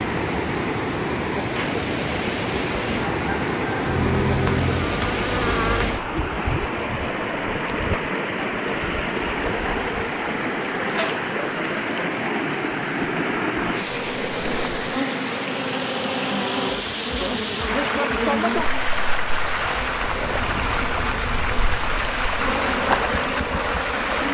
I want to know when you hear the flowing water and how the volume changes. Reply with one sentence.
The flowing water can be heard from 0.0 to 24.2 s, at a steady volume.